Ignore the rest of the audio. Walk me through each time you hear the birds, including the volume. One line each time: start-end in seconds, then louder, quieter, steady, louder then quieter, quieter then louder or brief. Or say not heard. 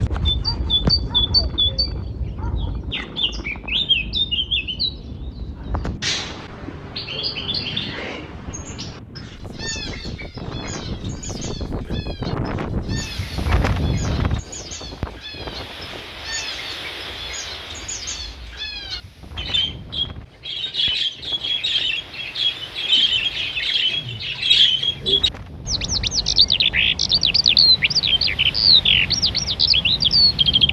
0.0-30.6 quieter then louder.